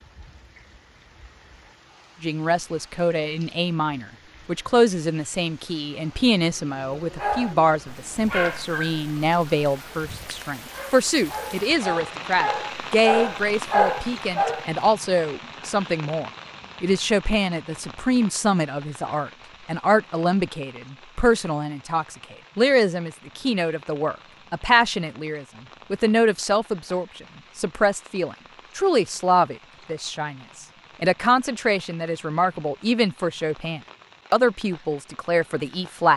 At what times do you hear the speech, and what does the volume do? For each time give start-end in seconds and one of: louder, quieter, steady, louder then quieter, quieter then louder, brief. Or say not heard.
2.2-36.1 steady.